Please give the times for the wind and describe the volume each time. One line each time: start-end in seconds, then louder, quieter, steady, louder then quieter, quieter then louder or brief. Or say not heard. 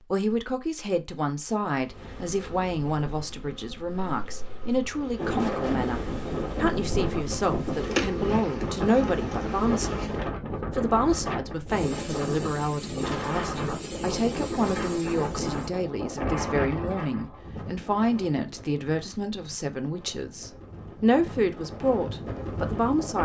5.2-23.2 quieter.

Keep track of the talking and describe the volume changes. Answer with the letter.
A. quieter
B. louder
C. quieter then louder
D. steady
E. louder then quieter
D.